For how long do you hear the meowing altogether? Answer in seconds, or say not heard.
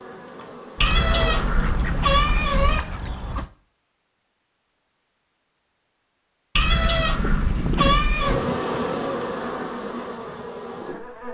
4 s.